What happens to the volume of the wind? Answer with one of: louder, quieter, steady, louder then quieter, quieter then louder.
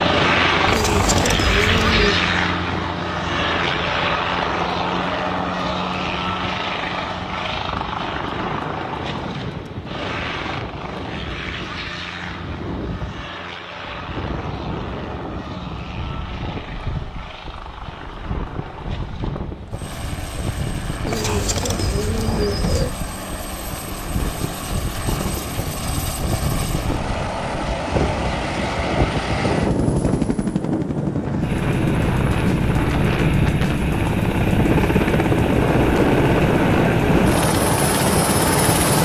louder.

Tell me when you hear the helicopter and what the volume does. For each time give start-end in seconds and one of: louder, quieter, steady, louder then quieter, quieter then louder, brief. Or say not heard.
0.0-39.0 quieter then louder.